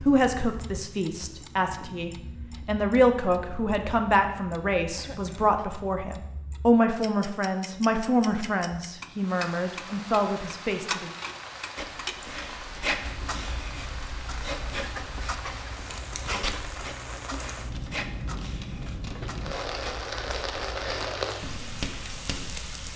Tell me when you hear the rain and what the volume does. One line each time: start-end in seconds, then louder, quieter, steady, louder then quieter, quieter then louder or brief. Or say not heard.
9.1-22.9 louder.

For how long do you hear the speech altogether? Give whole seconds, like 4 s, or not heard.
11 s.